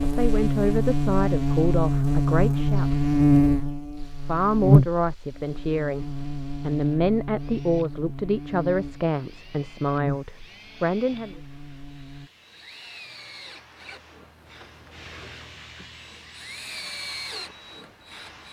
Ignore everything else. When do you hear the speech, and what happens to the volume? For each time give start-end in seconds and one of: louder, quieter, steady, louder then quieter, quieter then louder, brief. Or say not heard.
0.0-2.9 brief
4.2-11.3 steady.